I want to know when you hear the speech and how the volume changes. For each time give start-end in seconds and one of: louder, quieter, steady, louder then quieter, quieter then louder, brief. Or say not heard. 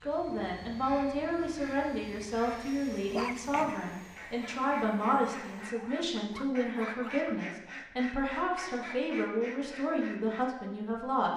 0.0-11.3 steady.